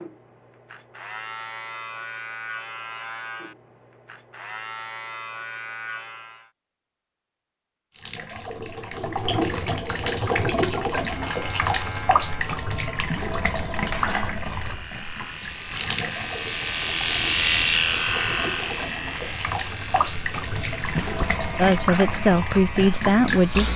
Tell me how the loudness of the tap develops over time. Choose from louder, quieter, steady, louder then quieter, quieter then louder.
quieter then louder.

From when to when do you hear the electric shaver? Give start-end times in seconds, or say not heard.
0.0-6.5, 11.1-23.7.